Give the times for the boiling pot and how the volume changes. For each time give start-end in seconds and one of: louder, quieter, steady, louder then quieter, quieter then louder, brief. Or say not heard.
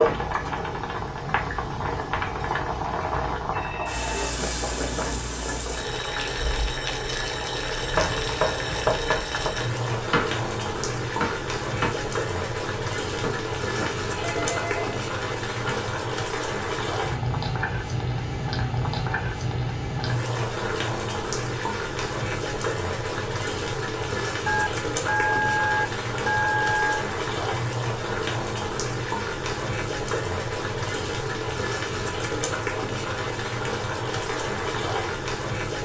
0.0-35.8 steady.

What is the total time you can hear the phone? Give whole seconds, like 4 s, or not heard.
5 s.